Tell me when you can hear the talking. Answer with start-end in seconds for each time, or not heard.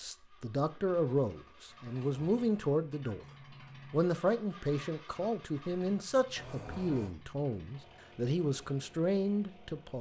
0.0-3.2, 3.9-9.9.